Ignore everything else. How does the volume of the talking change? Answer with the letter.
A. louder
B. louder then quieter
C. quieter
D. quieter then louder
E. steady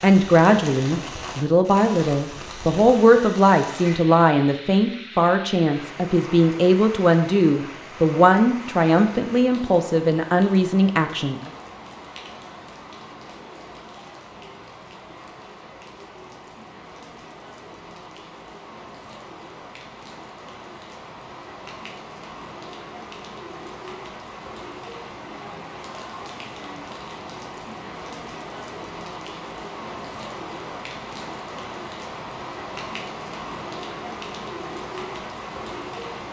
E.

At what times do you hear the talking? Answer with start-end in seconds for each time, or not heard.
0.0-11.5.